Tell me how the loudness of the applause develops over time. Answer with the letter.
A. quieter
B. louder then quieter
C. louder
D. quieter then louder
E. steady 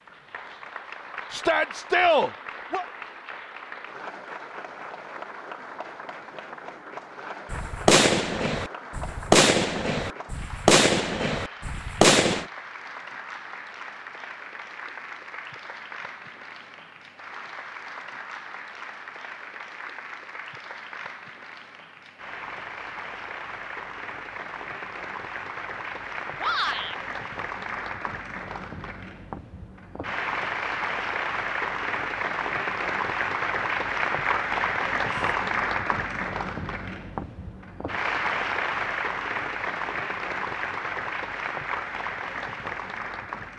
C.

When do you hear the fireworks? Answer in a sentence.
You can hear the fireworks from 7.5 to 12.4 s.